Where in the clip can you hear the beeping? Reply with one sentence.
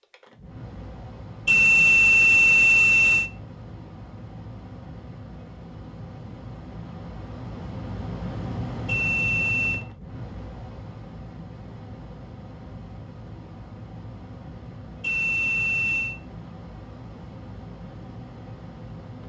The beeping can be heard from 1.4 to 3.3 s, from 8.8 to 9.8 s and from 15.0 to 16.1 s.